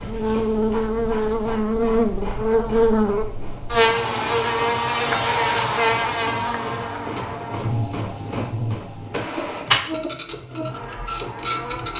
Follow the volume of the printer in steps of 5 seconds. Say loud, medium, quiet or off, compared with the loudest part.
medium, loud, loud.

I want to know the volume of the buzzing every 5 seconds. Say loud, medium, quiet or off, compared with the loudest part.
loud, loud, quiet.